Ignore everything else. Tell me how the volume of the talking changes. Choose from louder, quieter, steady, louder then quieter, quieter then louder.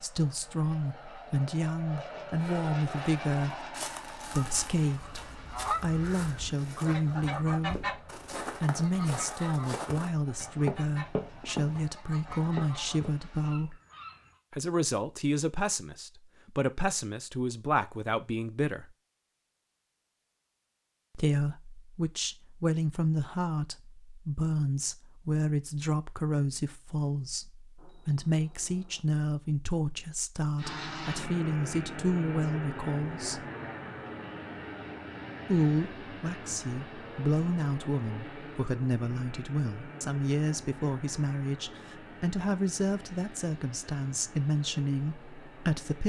steady.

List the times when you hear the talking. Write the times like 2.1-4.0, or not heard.
0.0-13.8, 14.5-18.9, 21.1-33.5, 35.5-46.0.